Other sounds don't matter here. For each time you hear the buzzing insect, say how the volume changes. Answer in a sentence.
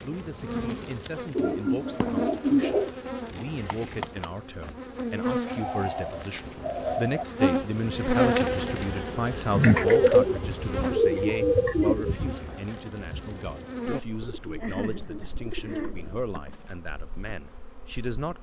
The buzzing insect can be heard from 0.0 to 18.3 s, getting louder then quieter.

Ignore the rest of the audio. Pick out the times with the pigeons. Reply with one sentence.
The pigeons can be heard from 1.4 to 3.0 s, from 5.5 to 7.2 s, from 9.6 to 12.2 s and from 14.2 to 16.2 s.